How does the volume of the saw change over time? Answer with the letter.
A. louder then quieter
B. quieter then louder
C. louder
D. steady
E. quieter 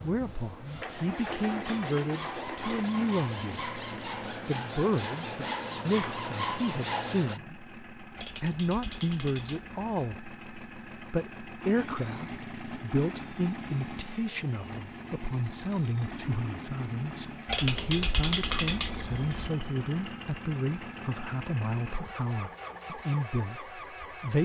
C.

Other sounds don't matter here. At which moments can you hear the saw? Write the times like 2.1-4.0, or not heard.
0.0-7.4.